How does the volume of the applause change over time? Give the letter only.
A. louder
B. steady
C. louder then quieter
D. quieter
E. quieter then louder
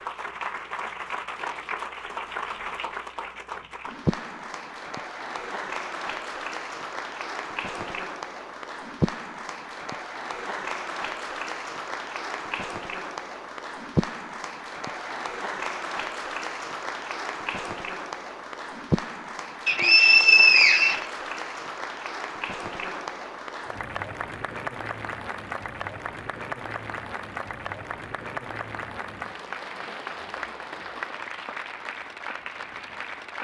B.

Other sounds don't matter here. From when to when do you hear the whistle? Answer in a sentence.
You can hear the whistle from 19.6 to 21.1 s.